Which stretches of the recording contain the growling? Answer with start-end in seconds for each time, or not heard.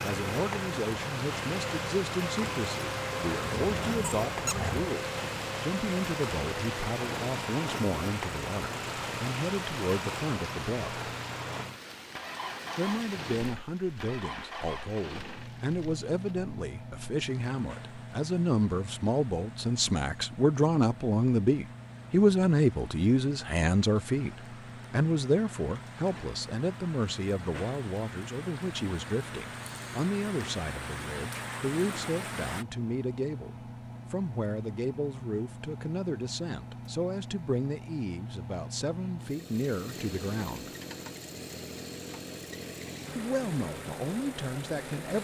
3.4-5.0.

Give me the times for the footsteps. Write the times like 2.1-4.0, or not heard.
not heard.